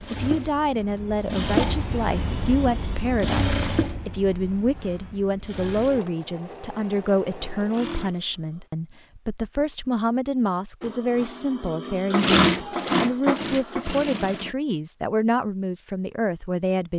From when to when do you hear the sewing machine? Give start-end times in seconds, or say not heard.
0.0-8.7, 10.8-14.6.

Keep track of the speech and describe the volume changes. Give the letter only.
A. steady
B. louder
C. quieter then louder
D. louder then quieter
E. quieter
A.